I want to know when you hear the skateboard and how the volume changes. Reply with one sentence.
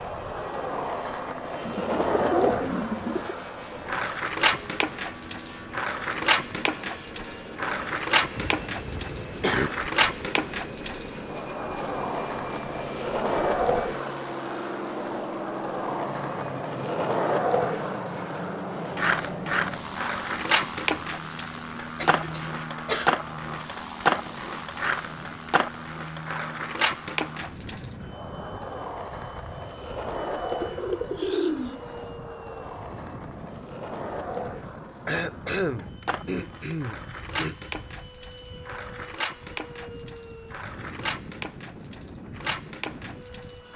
You can hear the skateboard from 0.0 to 43.7 s, getting quieter.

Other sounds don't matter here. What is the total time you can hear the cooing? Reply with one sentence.
You can hear the cooing for 3 seconds altogether.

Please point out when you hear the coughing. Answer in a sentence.
You can hear the coughing from 8.3 to 9.7 s, from 21.9 to 23.1 s and from 35.0 to 37.5 s.